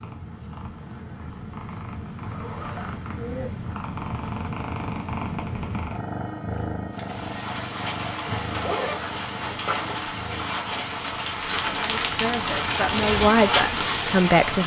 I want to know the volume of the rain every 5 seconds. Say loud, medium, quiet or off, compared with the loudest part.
off, medium, loud.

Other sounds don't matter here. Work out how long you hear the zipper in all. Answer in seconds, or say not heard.
3 s.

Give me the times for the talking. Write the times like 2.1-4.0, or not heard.
11.8-14.6.